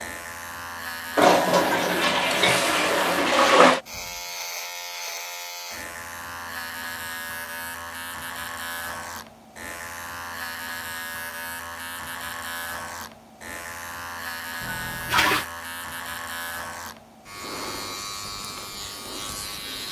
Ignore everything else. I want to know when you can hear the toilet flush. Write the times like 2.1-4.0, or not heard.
1.1-3.8, 14.6-15.4.